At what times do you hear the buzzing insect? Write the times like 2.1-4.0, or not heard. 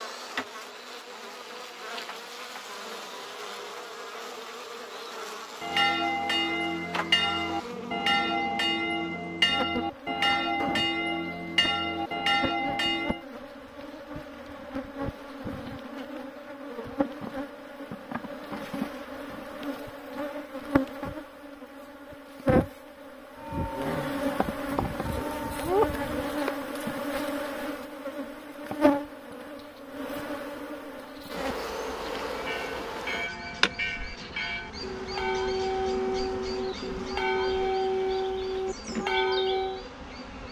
0.0-40.4.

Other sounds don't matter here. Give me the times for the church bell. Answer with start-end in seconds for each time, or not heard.
5.6-13.2, 23.4-26.3, 32.2-39.9.